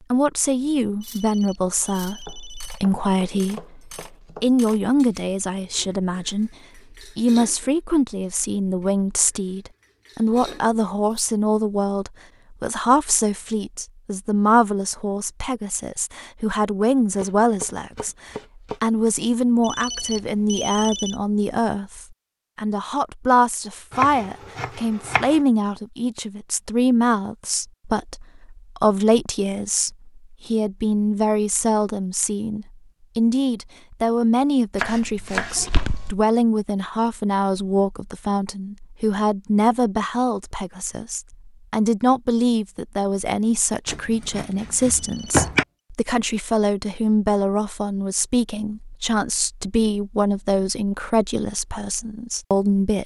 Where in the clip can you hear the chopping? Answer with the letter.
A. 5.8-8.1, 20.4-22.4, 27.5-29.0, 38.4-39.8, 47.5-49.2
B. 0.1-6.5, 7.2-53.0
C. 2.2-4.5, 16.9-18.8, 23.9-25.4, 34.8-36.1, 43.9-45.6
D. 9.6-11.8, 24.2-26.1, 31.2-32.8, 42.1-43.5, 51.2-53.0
C.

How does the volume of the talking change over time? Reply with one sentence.
The volume of the talking stays about the same.